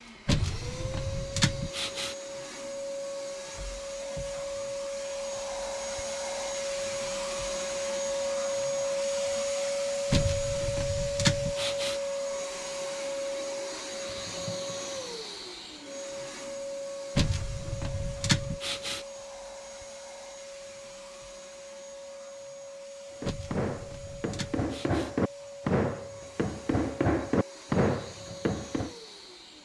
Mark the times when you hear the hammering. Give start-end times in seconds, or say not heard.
23.2-28.9.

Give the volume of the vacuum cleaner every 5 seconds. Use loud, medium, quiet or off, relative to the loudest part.
medium, loud, loud, medium, quiet, quiet.